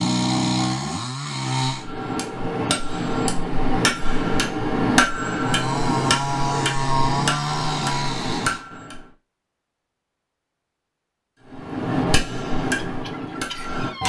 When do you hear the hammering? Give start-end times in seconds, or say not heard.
1.6-9.1, 11.5-14.0.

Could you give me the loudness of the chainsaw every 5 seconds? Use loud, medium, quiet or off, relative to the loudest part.
loud, loud, off.